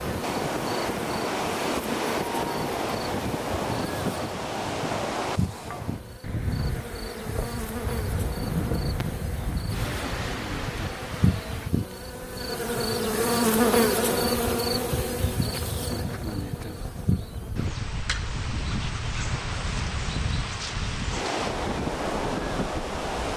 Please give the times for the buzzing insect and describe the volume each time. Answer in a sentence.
The buzzing insect can be heard from 0.0 to 23.3 s, getting louder then quieter.